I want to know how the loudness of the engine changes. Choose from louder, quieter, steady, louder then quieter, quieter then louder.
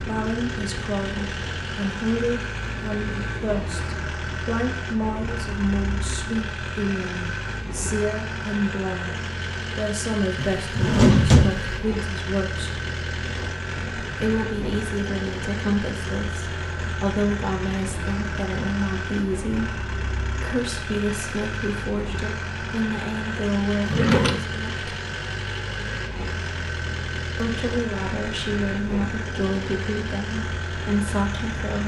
steady.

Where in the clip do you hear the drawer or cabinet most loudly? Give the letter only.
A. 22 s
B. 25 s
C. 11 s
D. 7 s
C.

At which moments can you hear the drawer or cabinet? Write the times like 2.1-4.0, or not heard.
10.3-11.7, 23.9-24.4.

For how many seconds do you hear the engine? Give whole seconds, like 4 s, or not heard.
32 s.